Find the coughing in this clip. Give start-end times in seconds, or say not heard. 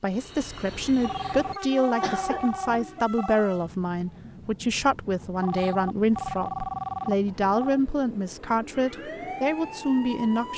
2.0-2.9.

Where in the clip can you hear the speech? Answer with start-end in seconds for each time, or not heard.
0.0-10.5.